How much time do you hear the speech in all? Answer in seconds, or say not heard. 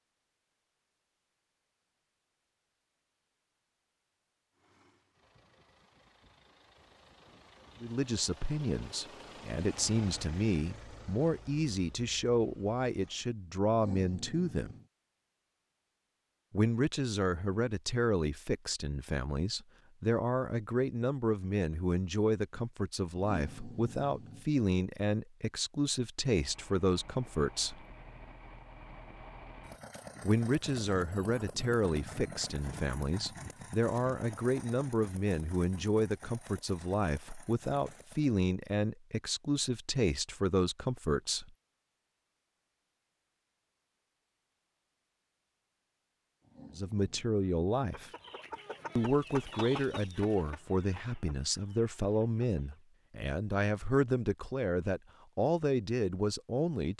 39 s.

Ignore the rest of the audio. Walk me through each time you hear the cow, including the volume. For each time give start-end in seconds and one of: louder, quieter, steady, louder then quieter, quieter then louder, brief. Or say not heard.
not heard.